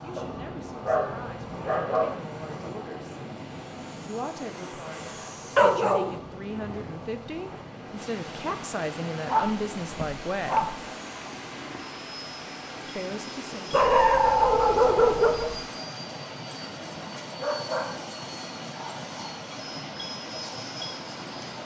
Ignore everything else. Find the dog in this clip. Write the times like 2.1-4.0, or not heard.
0.1-2.2, 5.5-6.9, 9.2-10.8, 13.7-15.6, 17.4-18.1, 18.8-19.4.